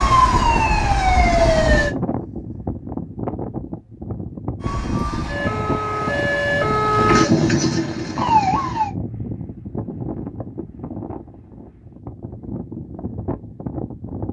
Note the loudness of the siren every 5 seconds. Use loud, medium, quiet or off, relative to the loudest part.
loud, loud, off.